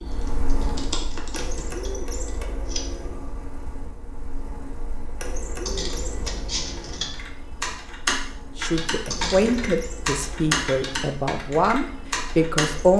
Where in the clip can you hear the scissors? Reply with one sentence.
The scissors can be heard from 0.5 to 2.8 s, from 5.7 to 7.1 s and from 9.1 to 9.8 s.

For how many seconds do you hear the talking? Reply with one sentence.
You can hear the talking for 4 seconds altogether.